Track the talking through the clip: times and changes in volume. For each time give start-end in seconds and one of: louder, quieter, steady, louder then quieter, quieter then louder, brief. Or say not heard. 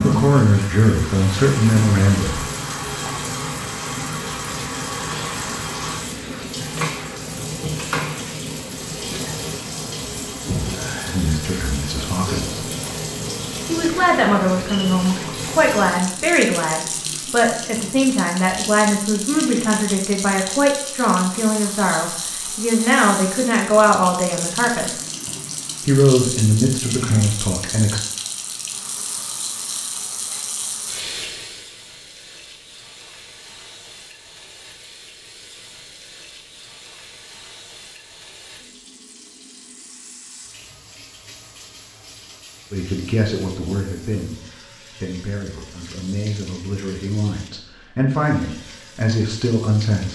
0.0-2.5 brief
11.1-12.7 brief
13.7-24.9 steady
25.9-28.0 brief
42.7-50.0 quieter then louder.